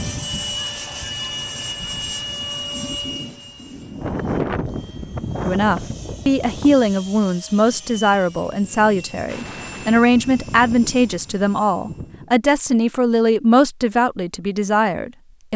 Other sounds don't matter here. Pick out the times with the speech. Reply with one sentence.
The speech can be heard from 5.5 to 15.5 s.